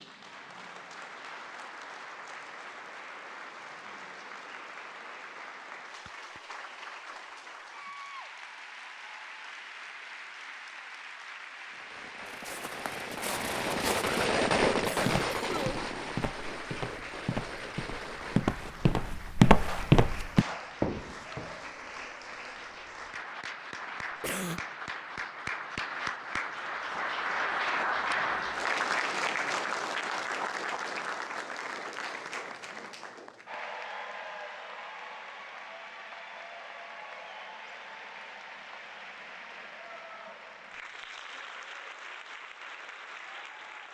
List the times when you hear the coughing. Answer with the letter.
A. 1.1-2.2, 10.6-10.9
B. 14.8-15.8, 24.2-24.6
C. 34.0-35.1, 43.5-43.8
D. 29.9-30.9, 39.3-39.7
B.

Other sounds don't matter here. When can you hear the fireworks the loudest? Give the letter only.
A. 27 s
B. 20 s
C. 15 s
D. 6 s
C.